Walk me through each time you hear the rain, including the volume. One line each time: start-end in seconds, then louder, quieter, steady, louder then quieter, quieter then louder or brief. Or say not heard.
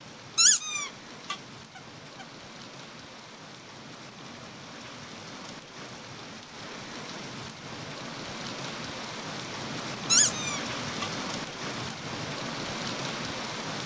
0.0-13.8 louder.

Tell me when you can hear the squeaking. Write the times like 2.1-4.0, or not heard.
0.3-1.8, 10.1-11.1.